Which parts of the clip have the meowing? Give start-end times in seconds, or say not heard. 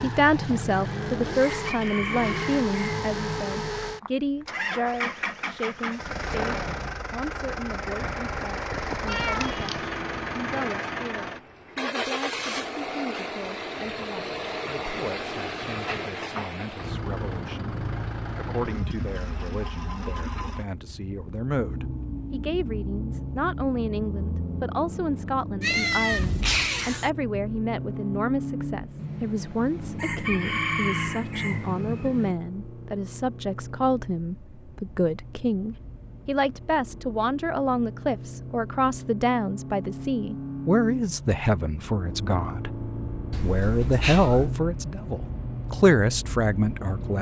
8.7-9.8, 25.6-27.1, 43.3-44.5.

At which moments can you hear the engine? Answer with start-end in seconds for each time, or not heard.
0.0-47.1.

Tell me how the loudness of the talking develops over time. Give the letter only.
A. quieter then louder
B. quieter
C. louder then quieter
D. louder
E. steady
A.